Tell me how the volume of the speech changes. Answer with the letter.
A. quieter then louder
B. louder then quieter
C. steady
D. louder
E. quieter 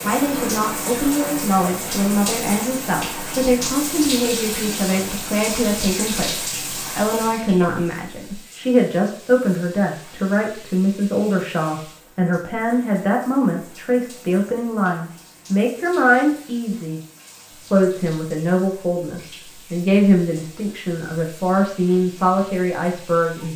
C.